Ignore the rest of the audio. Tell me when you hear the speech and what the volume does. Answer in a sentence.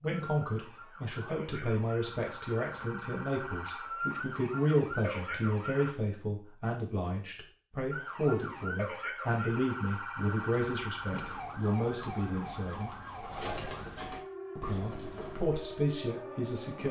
You can hear the speech from 0.0 to 12.9 s, at a steady volume; and briefly from 14.6 to 16.8 s.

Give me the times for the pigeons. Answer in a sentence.
The pigeons can be heard from 10.2 to 15.4 s.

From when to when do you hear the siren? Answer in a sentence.
You can hear the siren from 0.0 to 6.0 s and from 7.9 to 16.8 s.